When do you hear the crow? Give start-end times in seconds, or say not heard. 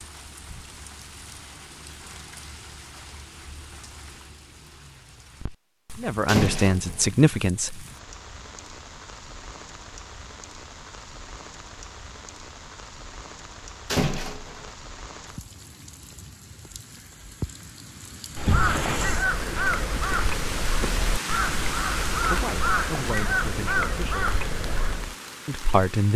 18.3-25.1.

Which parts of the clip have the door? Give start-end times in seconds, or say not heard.
6.2-7.1, 13.9-14.7, 18.4-19.2.